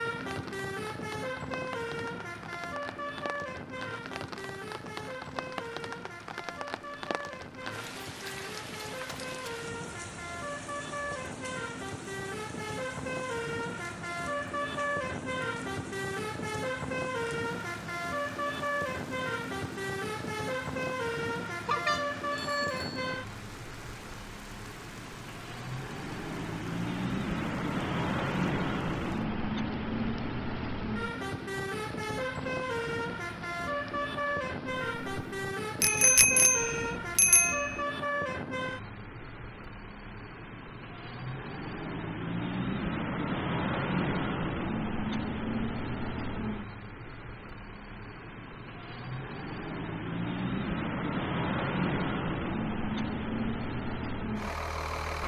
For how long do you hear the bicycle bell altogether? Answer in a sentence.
The bicycle bell can be heard for 3 seconds in total.